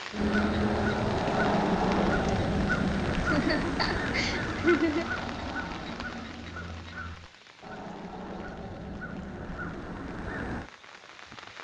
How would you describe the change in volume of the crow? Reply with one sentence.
The loudness of the crow goes down.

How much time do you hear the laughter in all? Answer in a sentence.
The laughter can be heard for 2 seconds in total.